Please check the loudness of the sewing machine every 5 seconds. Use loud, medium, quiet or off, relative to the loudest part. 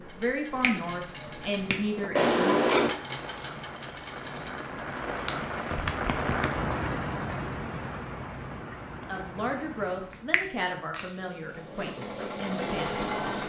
medium, quiet, loud.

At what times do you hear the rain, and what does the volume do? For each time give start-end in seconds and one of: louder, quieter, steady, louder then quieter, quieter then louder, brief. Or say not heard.
0.0-10.4 louder then quieter.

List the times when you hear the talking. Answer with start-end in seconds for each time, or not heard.
0.0-2.4, 9.1-13.4.